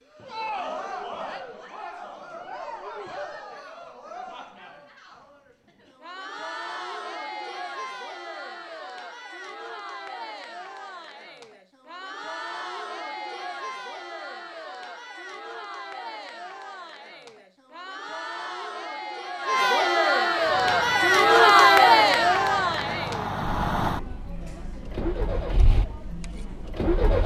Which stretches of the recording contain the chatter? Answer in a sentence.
You can hear the chatter from 0.0 to 27.2 s.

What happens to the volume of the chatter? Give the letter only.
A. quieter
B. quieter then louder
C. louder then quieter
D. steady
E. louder
E.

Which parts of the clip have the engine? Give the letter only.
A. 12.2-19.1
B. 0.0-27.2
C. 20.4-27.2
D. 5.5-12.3
C.